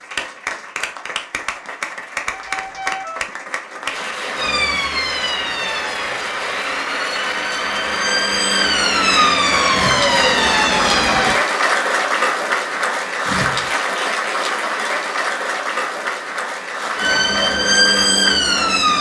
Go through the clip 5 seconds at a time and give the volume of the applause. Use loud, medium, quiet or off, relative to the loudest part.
medium, loud, loud, medium.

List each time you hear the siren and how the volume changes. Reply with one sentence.
You can hear the siren from 4.3 to 11.4 s, getting quieter then louder; and briefly from 16.9 to 18.9 s.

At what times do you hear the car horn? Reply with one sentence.
You can hear the car horn from 2.4 to 3.2 s.